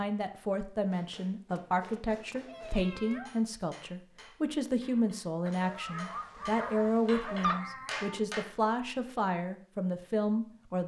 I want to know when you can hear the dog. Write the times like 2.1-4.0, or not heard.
5.5-7.7.